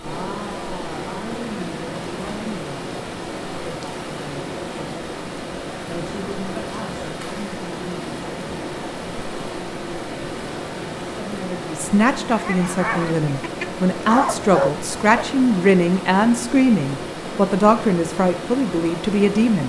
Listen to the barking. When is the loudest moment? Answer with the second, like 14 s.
15 s.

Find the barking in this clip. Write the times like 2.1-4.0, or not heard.
12.3-15.2.